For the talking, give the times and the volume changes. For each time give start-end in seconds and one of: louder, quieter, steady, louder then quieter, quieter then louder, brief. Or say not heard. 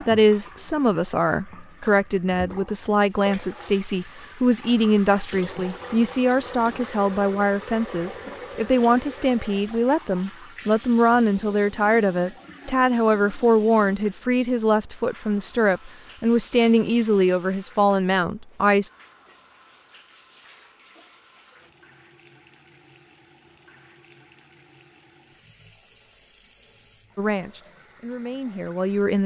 0.0-18.9 steady
27.1-29.2 brief.